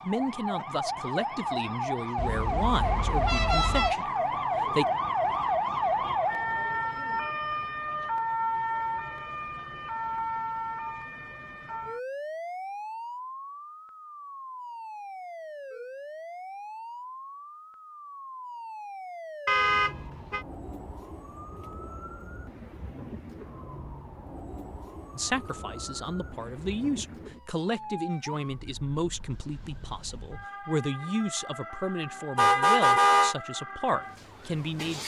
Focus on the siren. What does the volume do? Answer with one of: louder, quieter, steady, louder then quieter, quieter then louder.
quieter.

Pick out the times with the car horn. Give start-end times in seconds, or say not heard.
2.1-4.0, 19.4-20.4, 32.4-33.4.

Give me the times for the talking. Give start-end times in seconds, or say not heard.
0.1-4.8, 25.1-35.0.